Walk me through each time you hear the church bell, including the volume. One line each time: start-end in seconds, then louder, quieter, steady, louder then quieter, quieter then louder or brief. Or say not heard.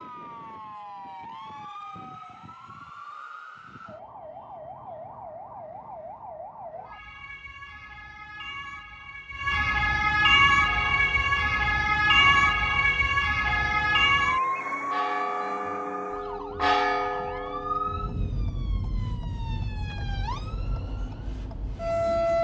10.5-18.3 louder.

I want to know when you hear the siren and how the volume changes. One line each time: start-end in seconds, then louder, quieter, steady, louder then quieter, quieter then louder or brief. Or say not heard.
0.0-22.3 louder then quieter.